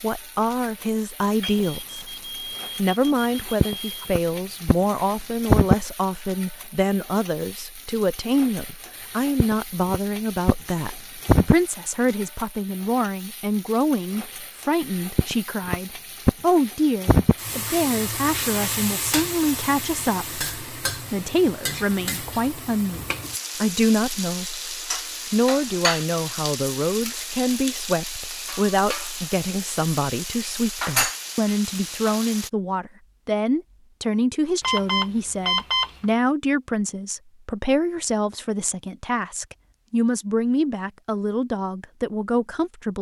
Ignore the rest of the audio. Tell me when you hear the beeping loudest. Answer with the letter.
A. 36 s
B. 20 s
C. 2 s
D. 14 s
A.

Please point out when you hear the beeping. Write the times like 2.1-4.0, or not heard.
1.4-4.2, 34.6-36.1.